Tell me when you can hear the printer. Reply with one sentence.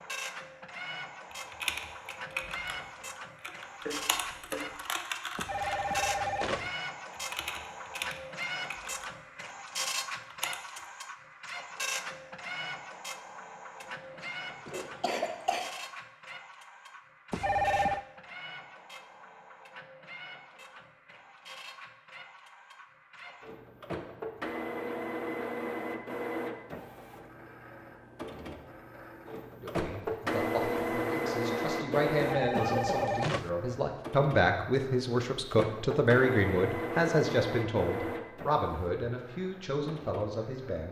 The printer can be heard from 0.0 to 40.8 s.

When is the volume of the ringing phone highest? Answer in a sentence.
The loudest moment of the ringing phone is at 18 seconds.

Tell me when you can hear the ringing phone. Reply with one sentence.
The ringing phone can be heard from 5.3 to 6.7 s, from 17.3 to 18.1 s and from 32.2 to 33.5 s.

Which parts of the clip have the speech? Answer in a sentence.
The speech can be heard from 29.6 to 40.8 s.